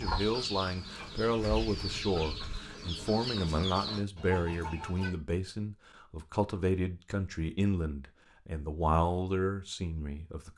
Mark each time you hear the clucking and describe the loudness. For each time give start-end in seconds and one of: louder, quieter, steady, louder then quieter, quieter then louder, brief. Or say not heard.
0.0-5.1 steady.